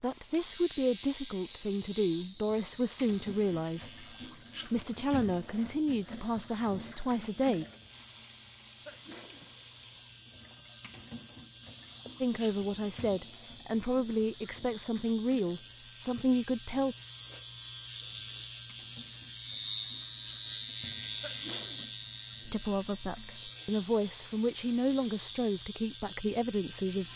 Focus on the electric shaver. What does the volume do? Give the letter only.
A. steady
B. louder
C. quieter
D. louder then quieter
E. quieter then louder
B.